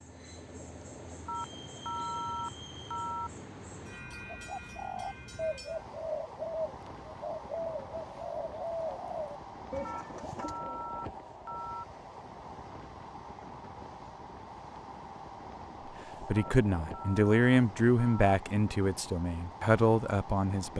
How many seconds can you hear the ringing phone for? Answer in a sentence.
The ringing phone can be heard for 6 seconds in total.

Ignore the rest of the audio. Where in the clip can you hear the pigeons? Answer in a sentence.
You can hear the pigeons from 4.3 to 10.8 s.